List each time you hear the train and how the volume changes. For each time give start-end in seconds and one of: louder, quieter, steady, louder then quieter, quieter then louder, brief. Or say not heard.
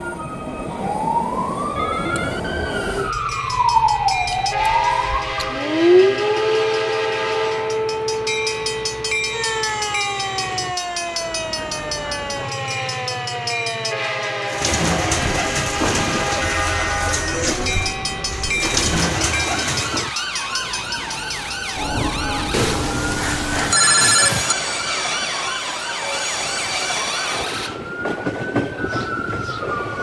0.0-29.9 steady.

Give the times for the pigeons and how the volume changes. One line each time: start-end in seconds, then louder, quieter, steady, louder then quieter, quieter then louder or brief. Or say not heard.
14.4-20.1 quieter then louder.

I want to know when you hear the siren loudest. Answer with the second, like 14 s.
6 s.